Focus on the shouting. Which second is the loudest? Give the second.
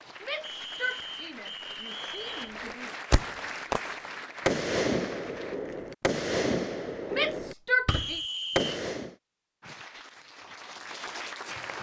8 s.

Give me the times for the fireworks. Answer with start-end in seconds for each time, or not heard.
2.2-9.2.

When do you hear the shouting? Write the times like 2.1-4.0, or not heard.
0.2-2.9, 7.1-8.2.